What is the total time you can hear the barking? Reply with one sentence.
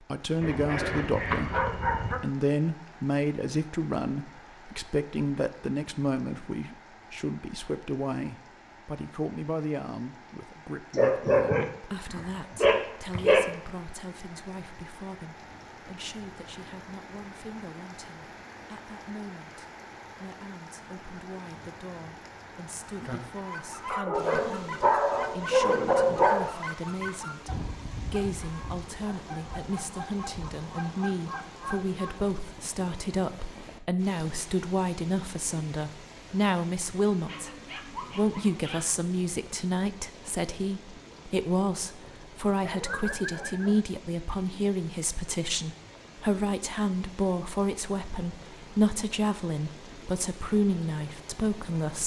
The barking can be heard for 10 seconds in total.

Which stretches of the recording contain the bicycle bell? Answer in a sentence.
You can't hear the bicycle bell here.